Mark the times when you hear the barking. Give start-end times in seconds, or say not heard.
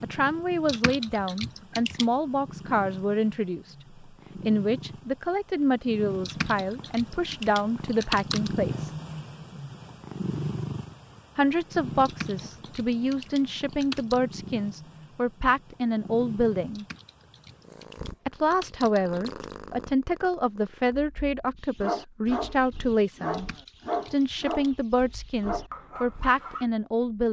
21.6-26.6.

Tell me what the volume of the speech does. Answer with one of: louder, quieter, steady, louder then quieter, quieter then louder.
steady.